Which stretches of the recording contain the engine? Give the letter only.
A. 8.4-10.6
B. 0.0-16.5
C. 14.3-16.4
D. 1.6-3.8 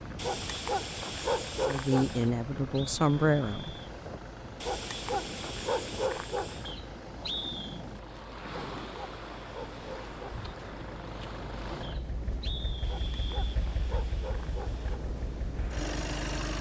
B.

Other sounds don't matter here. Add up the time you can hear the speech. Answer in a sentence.
You can hear the speech for 2 seconds altogether.